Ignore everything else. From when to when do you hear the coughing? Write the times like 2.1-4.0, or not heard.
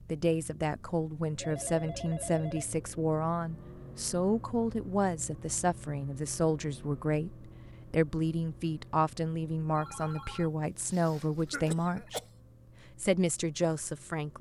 11.4-12.2.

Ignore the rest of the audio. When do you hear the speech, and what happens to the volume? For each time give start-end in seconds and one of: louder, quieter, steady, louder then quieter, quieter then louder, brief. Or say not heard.
0.1-12.2 steady
13.0-14.3 brief.